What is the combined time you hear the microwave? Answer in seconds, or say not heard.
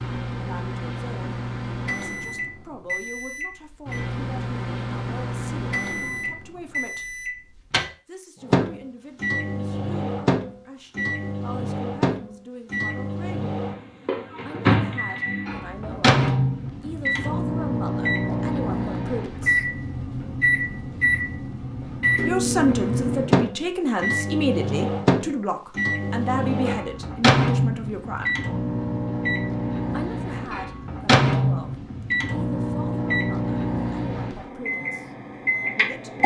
36 s.